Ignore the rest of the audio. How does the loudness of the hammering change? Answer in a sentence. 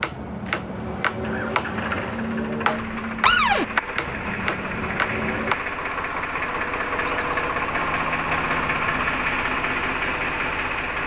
The volume of the hammering stays about the same.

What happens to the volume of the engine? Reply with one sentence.
The loudness of the engine goes up.